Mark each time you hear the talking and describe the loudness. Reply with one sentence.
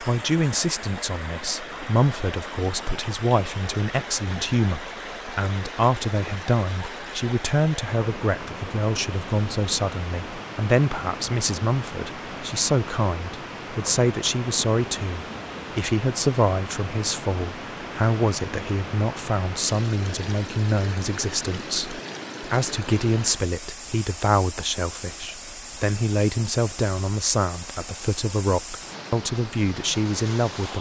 You can hear the talking from 0.0 to 30.7 s, at a steady volume.